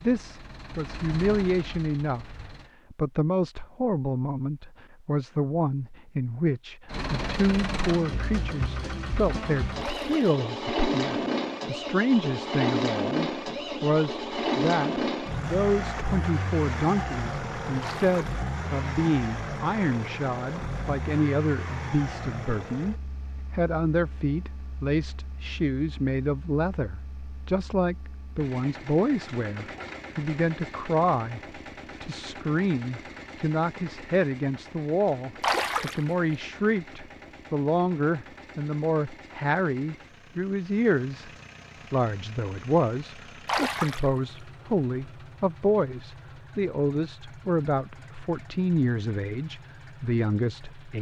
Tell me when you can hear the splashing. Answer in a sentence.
The splashing can be heard from 9.8 to 10.3 s, from 17.8 to 18.4 s, from 35.4 to 36.0 s and from 43.5 to 44.1 s.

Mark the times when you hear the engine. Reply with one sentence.
You can hear the engine from 0.0 to 2.7 s and from 6.8 to 50.9 s.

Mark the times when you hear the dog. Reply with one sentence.
You can't hear the dog here.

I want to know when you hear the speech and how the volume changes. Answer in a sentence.
The speech can be heard from 0.0 to 41.3 s, at a steady volume; and from 41.9 to 50.9 s, at a steady volume.